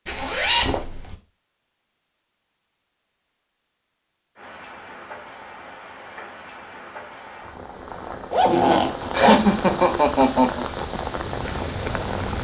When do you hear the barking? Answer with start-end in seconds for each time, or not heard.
not heard.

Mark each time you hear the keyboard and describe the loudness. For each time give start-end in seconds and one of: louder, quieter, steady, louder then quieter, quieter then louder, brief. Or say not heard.
not heard.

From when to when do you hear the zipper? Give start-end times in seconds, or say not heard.
0.1-1.1, 8.3-9.4.